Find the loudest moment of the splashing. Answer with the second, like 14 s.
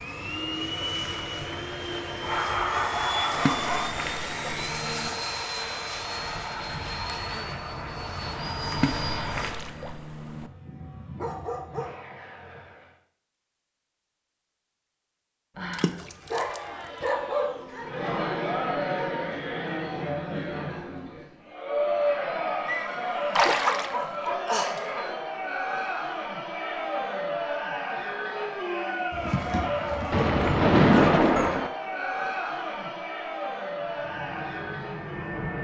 31 s.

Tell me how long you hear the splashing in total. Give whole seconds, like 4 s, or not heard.
7 s.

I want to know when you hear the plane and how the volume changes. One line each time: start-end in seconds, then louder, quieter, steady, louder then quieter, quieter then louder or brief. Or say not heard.
0.0-13.0 quieter
33.8-35.6 brief.